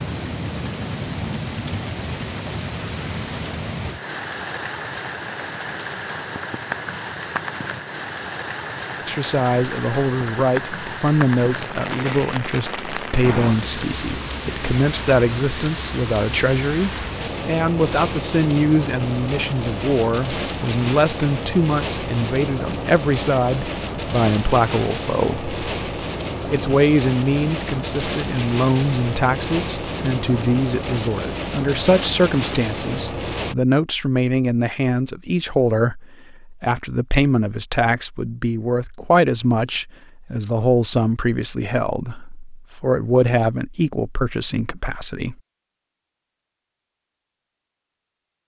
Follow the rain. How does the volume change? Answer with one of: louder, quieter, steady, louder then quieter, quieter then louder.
steady.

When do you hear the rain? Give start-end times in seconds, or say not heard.
0.0-33.5.